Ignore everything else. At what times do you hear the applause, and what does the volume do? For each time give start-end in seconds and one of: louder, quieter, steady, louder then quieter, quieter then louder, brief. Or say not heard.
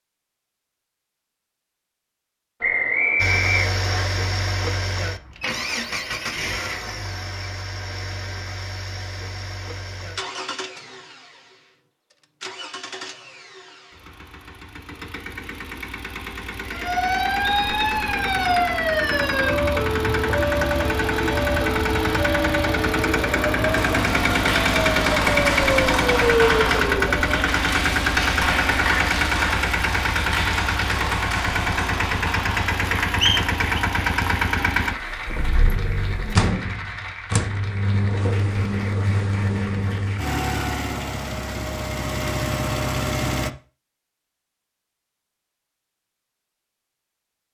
23.7-40.4 quieter.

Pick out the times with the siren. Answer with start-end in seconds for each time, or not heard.
16.7-27.4.